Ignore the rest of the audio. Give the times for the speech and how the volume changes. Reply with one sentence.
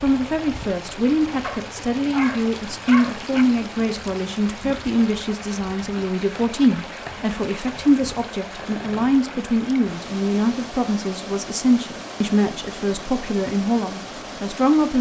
The speech can be heard from 0.0 to 14.9 s, at a steady volume.